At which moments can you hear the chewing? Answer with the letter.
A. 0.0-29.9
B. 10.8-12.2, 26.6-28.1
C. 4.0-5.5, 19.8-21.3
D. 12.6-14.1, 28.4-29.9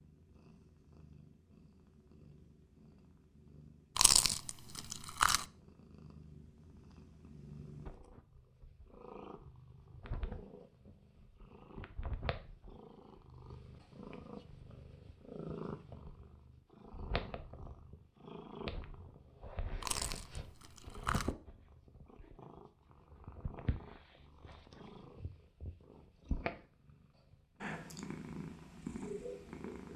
C.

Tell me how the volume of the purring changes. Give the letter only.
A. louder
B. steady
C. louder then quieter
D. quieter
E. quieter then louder
A.